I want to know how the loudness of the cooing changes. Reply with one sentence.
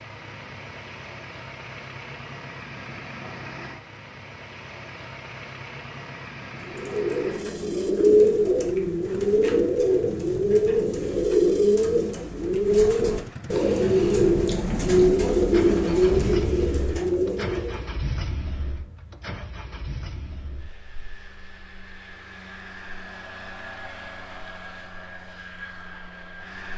The volume of the cooing stays about the same.